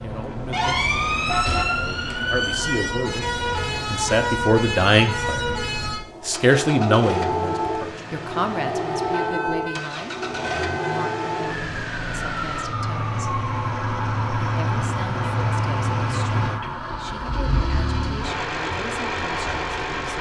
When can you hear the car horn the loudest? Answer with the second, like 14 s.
1 s.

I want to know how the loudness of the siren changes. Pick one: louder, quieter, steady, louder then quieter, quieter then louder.
quieter.